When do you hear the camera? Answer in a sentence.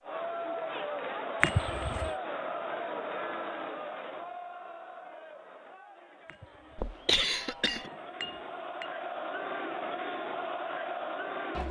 You can't hear the camera here.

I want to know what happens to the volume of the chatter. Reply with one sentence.
The volume of the chatter goes down, then up.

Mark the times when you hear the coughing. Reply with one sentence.
You can hear the coughing from 6.8 to 7.9 s.